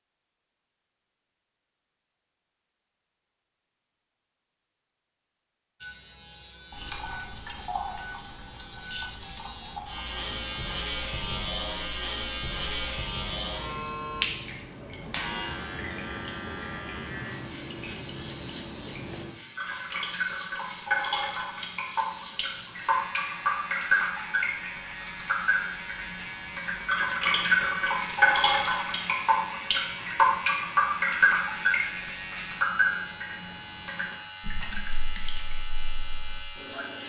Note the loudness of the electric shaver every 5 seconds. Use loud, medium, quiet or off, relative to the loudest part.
off, medium, loud, medium, medium, medium, medium, medium.